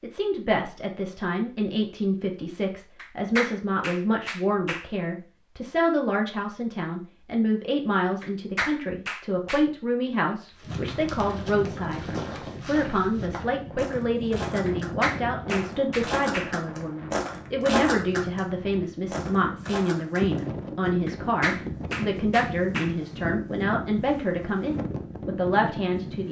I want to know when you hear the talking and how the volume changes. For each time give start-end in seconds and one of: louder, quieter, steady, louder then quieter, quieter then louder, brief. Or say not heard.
0.0-26.2 steady.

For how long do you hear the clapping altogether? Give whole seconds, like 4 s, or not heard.
7 s.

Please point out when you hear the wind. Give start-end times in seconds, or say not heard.
10.6-26.2.